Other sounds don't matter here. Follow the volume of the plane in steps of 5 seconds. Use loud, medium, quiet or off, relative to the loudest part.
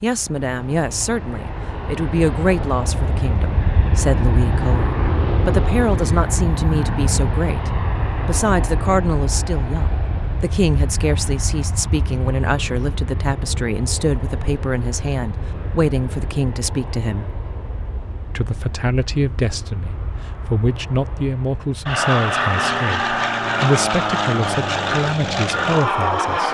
medium, medium, medium, quiet, loud, loud.